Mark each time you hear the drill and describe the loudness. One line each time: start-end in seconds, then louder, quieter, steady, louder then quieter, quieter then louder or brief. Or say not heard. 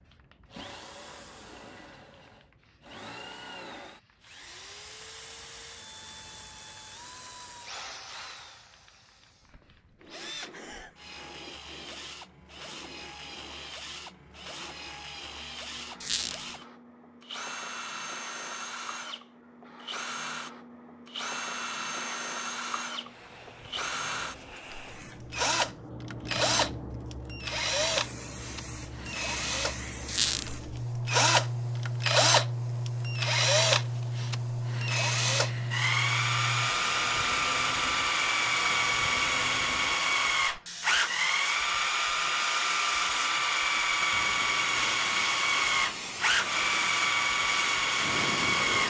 0.0-48.8 louder.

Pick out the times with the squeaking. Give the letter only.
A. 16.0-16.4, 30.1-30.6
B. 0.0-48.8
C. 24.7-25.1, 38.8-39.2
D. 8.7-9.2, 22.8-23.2
A.